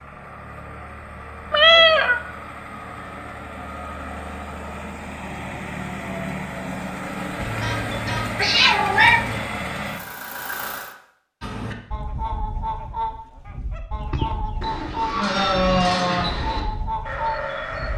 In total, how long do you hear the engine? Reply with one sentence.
You can hear the engine for 11 seconds altogether.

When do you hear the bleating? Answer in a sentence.
You can hear the bleating from 14.6 to 17.9 s.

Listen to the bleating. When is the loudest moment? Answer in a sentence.
The loudest moment of the bleating is at 16 seconds.